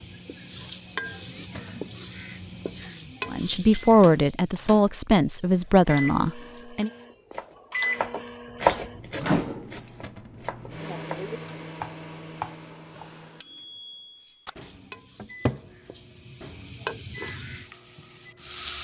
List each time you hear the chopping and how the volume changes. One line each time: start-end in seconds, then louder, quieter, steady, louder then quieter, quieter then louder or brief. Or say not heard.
7.3-13.1 quieter then louder.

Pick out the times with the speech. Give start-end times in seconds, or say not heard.
3.3-6.9.